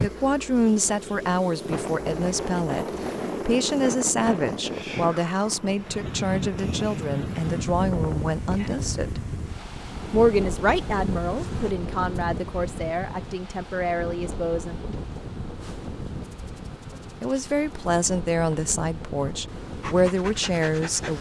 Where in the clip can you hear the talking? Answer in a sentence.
The talking can be heard from 0.0 to 2.9 s, from 3.5 to 9.2 s, from 10.1 to 14.8 s and from 17.2 to 21.1 s.